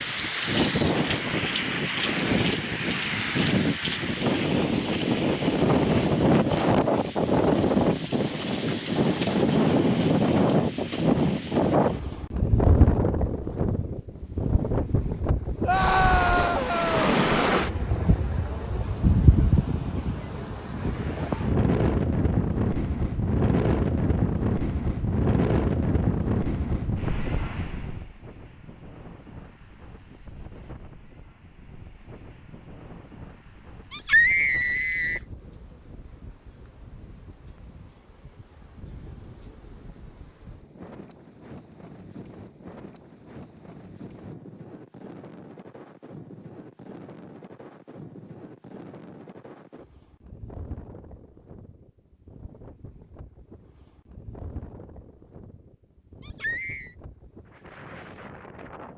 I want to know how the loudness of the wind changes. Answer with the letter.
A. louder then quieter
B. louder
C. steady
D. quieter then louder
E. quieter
E.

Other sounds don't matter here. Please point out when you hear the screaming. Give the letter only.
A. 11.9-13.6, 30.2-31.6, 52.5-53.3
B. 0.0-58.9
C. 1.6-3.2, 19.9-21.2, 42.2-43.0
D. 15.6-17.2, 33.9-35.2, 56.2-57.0
D.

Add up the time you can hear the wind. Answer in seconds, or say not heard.
59 s.